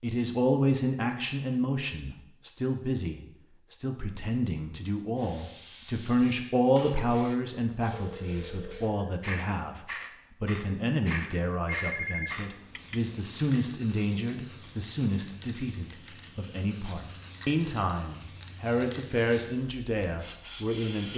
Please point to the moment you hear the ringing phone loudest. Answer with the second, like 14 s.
12 s.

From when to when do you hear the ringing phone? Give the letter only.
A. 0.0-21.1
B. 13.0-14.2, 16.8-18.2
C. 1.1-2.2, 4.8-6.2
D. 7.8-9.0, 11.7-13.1
D.